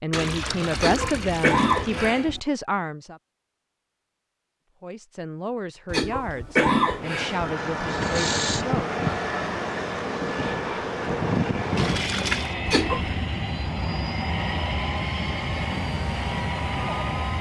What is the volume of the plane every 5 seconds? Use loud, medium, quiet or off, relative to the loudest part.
off, loud, loud, loud.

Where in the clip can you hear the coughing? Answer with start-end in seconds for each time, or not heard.
0.8-2.4, 5.9-7.5, 12.7-13.2.